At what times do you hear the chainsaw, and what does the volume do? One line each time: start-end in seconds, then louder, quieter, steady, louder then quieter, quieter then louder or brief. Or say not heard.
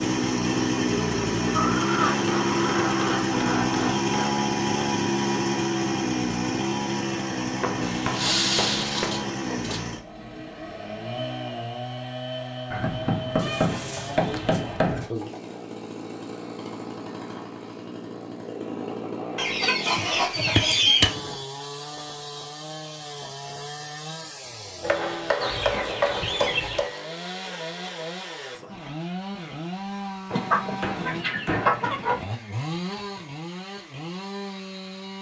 0.0-35.1 quieter.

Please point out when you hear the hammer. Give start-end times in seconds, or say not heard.
2.1-4.3, 7.6-9.3, 12.7-15.1, 19.9-21.3, 24.8-26.9, 30.3-31.9.